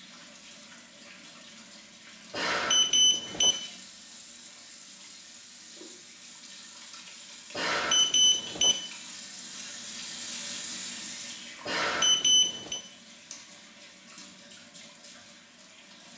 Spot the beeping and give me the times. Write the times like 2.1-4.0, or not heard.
2.3-3.5, 7.5-8.8, 11.7-12.8.